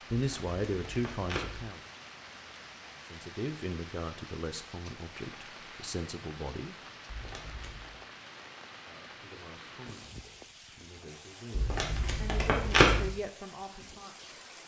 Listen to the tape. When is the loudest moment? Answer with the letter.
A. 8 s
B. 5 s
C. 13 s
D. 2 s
C.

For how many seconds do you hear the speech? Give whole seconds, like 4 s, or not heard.
11 s.